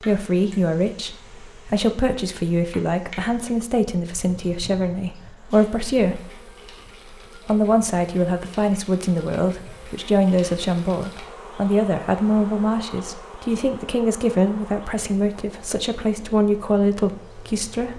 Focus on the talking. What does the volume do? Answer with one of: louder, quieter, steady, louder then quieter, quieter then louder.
steady.